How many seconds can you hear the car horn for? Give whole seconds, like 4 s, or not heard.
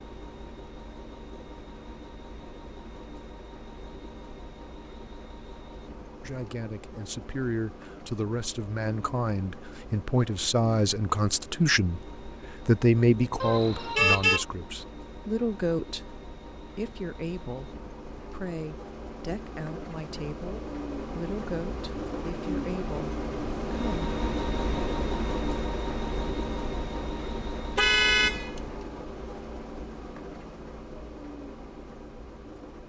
2 s.